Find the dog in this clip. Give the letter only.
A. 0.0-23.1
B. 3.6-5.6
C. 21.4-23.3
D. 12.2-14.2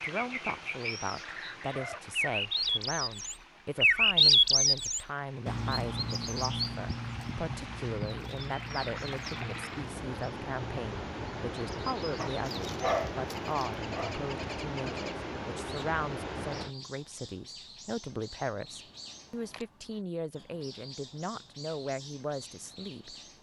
D.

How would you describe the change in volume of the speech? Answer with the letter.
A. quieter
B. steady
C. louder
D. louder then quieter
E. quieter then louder
B.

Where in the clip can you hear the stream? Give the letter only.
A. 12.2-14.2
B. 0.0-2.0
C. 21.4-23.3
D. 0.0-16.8
D.